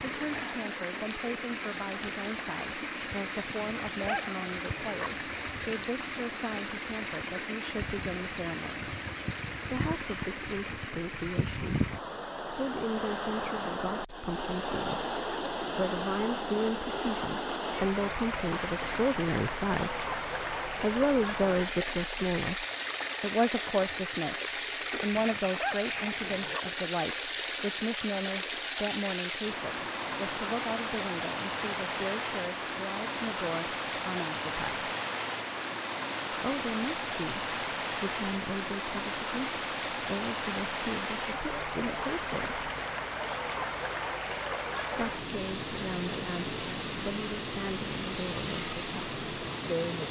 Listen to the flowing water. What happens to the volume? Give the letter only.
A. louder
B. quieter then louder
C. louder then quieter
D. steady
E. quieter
D.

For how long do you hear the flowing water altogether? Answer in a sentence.
The flowing water can be heard for 50 seconds in total.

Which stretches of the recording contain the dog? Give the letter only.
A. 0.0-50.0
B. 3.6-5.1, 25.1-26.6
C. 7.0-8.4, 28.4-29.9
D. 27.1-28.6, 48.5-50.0
B.